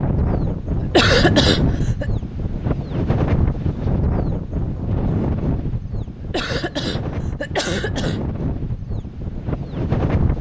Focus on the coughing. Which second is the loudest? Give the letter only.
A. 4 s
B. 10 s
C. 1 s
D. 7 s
C.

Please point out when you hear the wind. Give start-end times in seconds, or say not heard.
0.0-10.3.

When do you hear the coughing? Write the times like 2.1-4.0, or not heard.
0.9-2.0, 6.3-8.2.